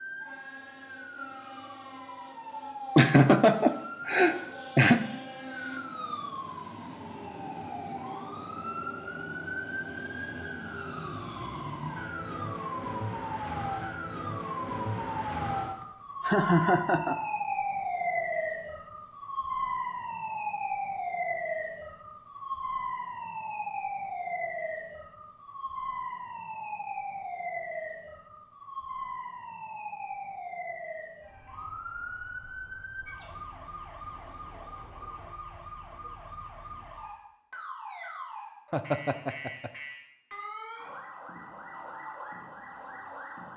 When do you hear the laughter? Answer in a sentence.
You can hear the laughter from 3.0 to 5.0 s, from 15.8 to 17.1 s and from 38.7 to 39.7 s.